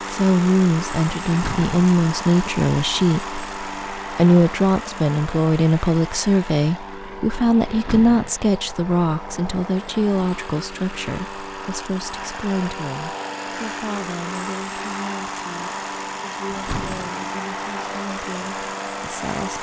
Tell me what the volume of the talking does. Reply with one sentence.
The volume of the talking goes down.